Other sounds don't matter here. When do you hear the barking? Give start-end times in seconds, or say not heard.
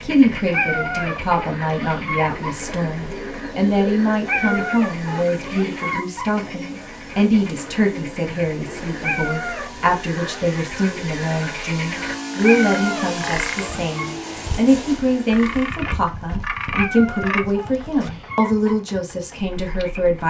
0.5-2.5, 4.2-6.2, 9.0-10.6, 12.4-14.0, 16.8-18.8.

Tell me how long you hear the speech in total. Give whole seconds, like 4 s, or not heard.
20 s.